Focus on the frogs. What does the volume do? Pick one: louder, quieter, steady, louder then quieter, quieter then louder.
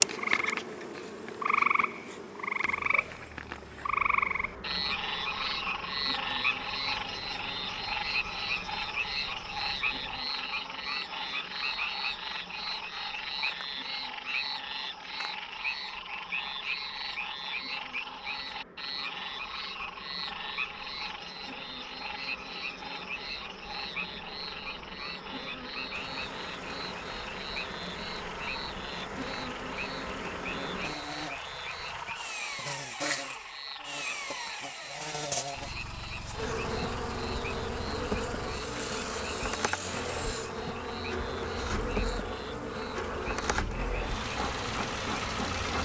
quieter.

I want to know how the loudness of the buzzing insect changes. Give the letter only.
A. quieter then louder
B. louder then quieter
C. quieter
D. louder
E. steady
A.